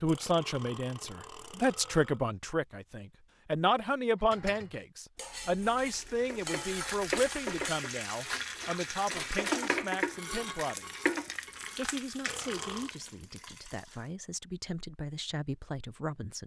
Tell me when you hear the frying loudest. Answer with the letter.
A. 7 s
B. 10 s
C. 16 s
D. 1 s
B.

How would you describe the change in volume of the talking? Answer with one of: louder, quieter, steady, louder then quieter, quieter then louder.
quieter.